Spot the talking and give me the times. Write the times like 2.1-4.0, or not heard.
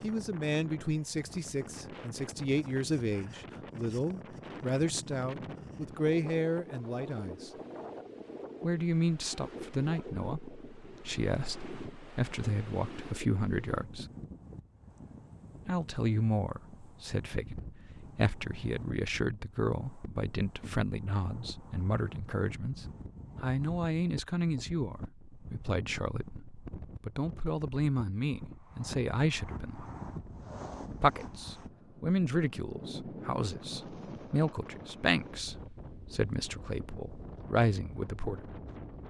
0.0-7.5, 8.6-14.1, 15.7-29.9, 31.0-38.4.